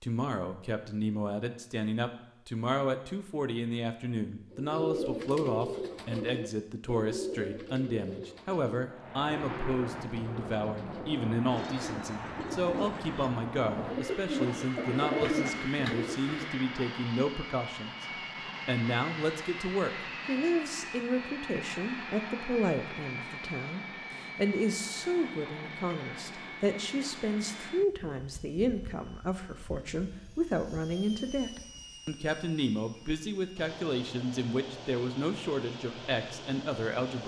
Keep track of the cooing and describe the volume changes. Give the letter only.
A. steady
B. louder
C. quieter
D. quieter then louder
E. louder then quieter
D.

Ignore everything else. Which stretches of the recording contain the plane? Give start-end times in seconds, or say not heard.
8.8-37.2.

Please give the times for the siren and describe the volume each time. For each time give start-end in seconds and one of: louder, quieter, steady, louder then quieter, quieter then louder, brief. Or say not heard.
not heard.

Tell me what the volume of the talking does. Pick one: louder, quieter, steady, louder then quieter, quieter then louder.
steady.